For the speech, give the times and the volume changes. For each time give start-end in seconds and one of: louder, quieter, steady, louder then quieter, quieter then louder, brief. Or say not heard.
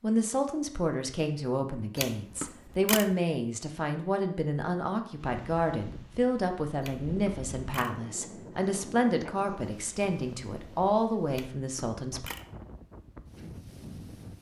0.0-12.3 steady.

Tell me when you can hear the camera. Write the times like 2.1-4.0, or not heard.
1.9-3.1, 6.8-8.0, 11.3-12.5.